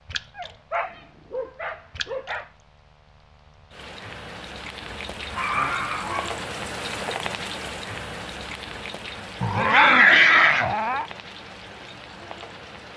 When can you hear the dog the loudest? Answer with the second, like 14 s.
10 s.